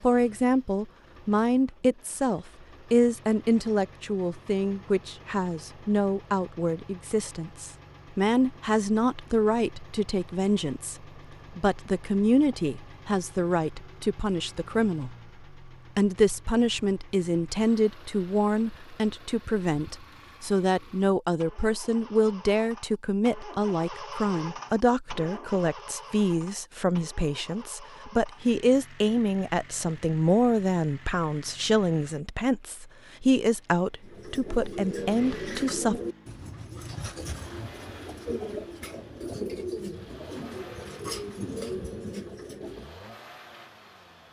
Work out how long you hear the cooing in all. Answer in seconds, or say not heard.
9 s.